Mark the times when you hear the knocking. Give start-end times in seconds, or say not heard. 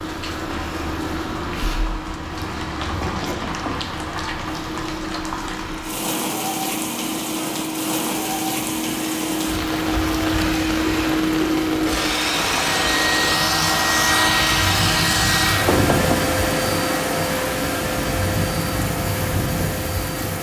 3.0-3.9, 15.7-16.2.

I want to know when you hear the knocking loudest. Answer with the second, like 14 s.
16 s.